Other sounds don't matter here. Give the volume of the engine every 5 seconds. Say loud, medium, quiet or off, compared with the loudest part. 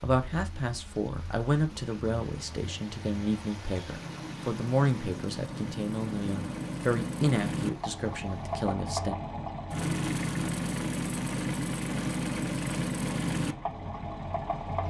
quiet, loud, loud.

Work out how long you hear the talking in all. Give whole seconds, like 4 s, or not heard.
9 s.